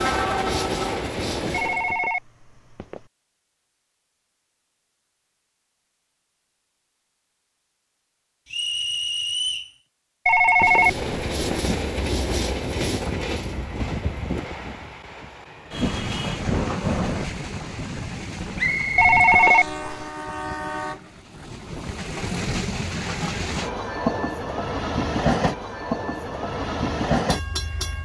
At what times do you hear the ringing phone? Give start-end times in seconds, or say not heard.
1.5-3.0, 10.2-11.7, 18.9-20.1.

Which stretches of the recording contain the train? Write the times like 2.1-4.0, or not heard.
0.0-2.0, 10.6-27.9.